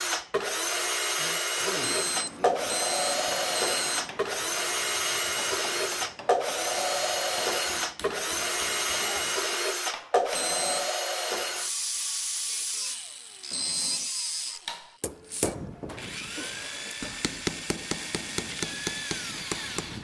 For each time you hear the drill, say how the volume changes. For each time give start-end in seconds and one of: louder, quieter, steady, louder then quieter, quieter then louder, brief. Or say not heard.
0.0-20.0 quieter.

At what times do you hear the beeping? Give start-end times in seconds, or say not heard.
1.8-4.2, 10.3-10.9, 13.5-14.1.